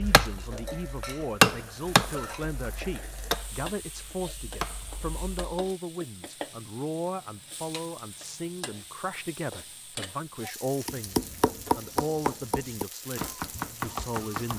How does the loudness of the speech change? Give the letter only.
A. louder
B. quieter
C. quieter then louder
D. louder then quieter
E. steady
E.